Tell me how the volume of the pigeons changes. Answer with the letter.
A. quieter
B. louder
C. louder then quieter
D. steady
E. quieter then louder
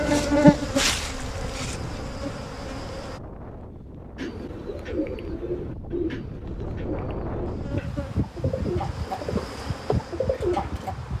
E.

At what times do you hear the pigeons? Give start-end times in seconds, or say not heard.
4.2-10.9.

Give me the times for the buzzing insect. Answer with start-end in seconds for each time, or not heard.
0.0-3.2, 7.5-11.1.